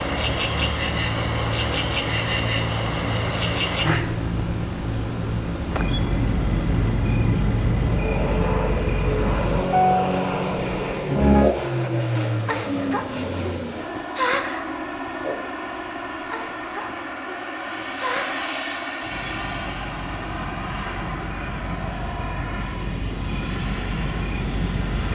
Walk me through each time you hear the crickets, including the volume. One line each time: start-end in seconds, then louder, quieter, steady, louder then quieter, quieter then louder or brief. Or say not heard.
0.0-25.1 quieter.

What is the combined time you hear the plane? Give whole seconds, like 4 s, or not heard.
25 s.